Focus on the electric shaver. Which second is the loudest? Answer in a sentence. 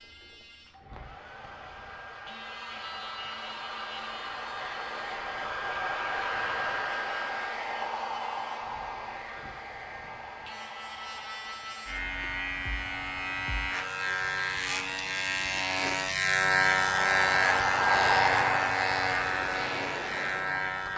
The volume of the electric shaver peaks at 17 seconds.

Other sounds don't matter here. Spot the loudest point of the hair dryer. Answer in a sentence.
The volume of the hair dryer peaks at 18 seconds.